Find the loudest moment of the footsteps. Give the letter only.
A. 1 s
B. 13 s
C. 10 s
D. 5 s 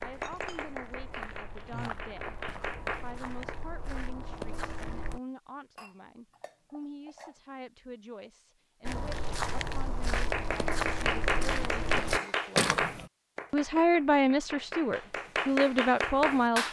B.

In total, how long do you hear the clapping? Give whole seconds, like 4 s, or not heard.
10 s.